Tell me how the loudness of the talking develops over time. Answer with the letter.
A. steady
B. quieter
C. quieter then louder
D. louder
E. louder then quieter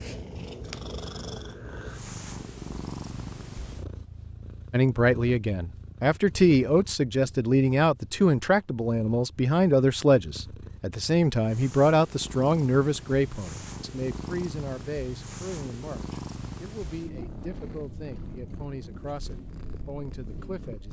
B.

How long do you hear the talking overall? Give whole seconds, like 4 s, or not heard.
16 s.